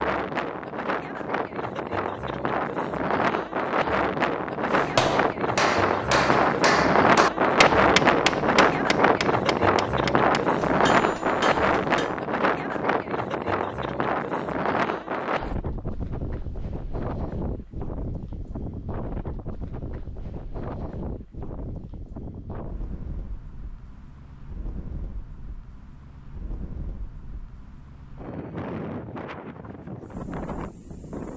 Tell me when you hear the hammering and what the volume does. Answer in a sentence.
The hammering can be heard from 4.7 to 12.2 s, getting quieter.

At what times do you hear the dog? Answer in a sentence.
The dog can't be heard in this clip.